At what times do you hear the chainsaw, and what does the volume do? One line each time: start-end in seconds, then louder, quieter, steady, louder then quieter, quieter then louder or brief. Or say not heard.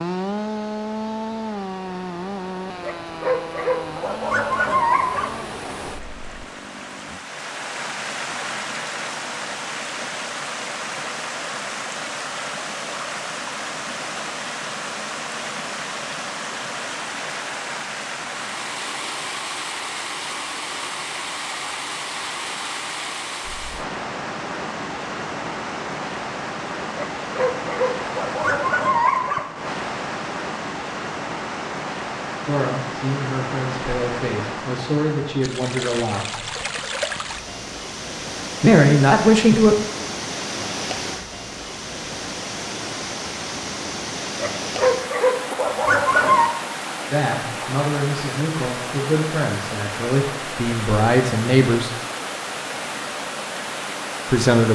0.0-7.2 quieter.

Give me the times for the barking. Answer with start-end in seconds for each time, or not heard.
2.8-5.4, 26.9-29.4, 44.4-46.5.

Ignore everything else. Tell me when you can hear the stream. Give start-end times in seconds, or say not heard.
0.0-54.6.